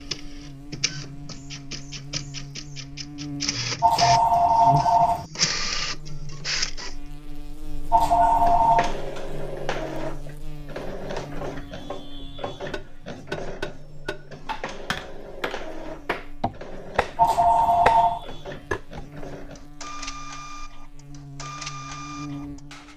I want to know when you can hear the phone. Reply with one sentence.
The phone can be heard from 3.8 to 5.2 s, from 7.9 to 8.9 s and from 17.1 to 18.2 s.